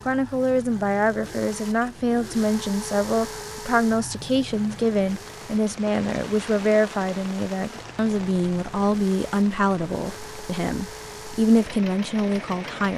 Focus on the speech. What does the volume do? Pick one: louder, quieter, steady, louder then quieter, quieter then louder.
steady.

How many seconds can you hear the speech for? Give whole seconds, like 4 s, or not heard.
13 s.